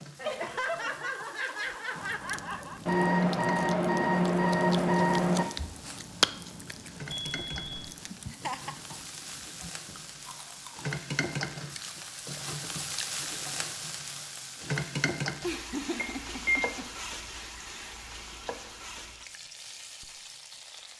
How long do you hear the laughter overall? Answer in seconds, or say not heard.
5 s.